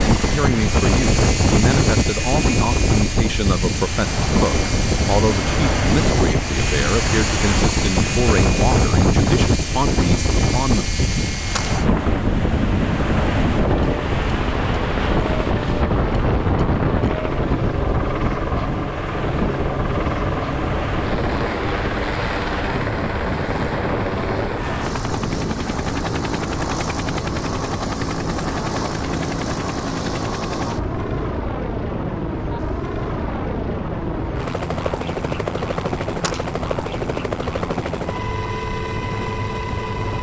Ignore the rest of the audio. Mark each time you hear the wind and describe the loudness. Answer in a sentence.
The wind can be heard from 0.0 to 40.1 s, getting quieter.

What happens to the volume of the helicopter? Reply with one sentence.
The loudness of the helicopter stays about the same.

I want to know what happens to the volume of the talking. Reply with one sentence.
The volume of the talking stays about the same.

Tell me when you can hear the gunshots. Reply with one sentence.
You can hear the gunshots from 11.1 to 11.8 s and from 35.8 to 36.5 s.